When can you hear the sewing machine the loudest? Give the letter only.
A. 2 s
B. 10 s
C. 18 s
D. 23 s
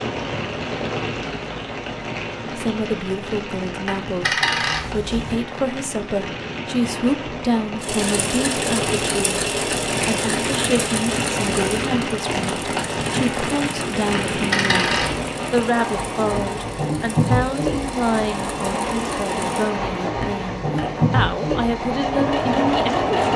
D.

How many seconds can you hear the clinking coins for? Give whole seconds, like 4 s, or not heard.
3 s.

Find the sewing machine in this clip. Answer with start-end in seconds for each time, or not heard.
7.8-23.3.